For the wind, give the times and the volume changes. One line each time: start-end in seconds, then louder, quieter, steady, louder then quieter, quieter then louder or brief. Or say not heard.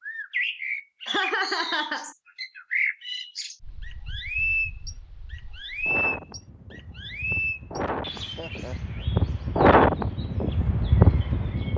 3.6-11.7 louder.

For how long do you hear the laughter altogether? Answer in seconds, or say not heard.
2 s.